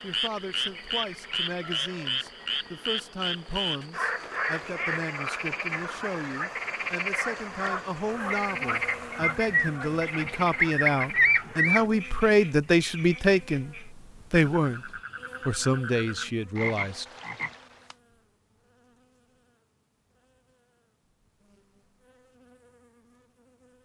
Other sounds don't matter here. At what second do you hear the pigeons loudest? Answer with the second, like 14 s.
11 s.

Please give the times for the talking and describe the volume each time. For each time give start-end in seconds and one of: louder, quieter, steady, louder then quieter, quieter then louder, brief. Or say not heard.
0.0-14.8 louder
15.4-17.1 brief.